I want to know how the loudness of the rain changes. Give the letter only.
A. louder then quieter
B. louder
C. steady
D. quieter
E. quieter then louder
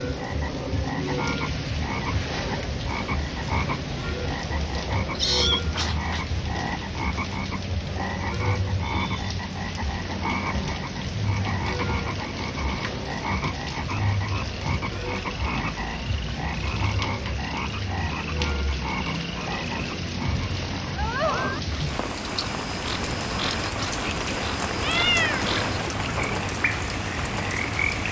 C.